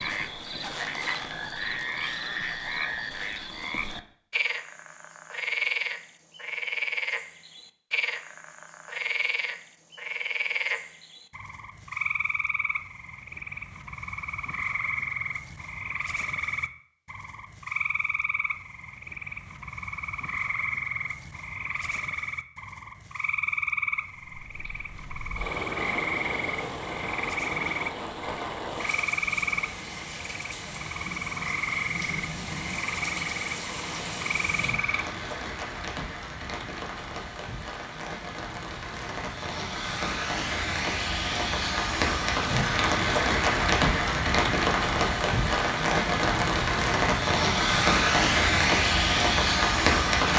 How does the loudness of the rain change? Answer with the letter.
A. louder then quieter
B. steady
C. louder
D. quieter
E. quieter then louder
C.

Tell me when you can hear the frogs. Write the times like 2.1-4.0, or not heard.
0.0-35.1.